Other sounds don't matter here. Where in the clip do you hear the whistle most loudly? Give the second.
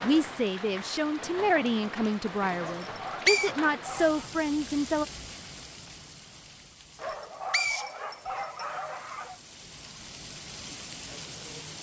3 s.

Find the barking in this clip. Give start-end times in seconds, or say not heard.
2.5-4.3, 7.0-9.4.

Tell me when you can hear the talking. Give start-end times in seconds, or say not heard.
0.0-5.0.